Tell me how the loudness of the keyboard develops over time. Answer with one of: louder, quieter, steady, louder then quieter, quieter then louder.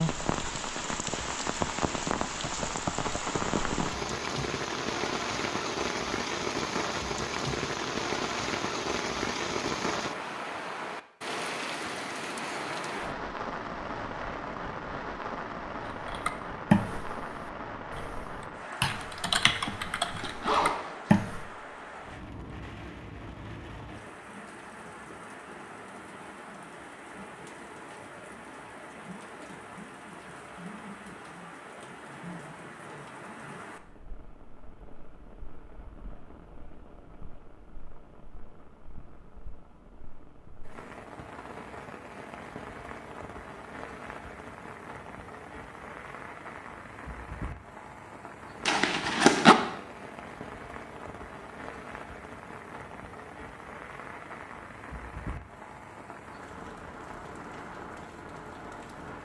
quieter then louder.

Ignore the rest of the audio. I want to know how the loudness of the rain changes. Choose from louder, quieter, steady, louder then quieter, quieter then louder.
quieter.